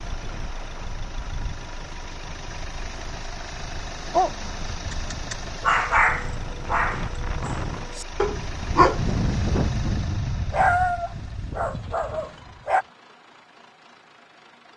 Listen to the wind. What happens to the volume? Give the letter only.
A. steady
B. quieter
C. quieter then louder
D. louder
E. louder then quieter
E.